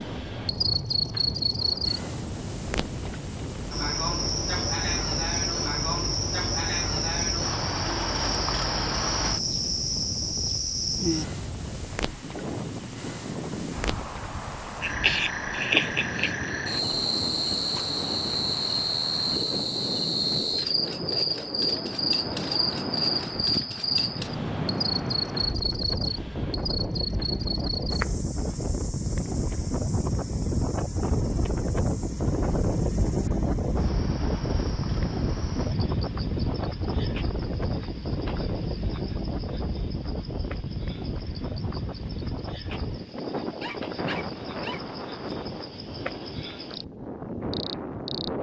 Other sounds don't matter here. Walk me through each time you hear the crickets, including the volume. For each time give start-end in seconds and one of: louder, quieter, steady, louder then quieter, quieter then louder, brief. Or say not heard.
0.0-48.3 quieter.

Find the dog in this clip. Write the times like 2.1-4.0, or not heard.
43.6-45.4.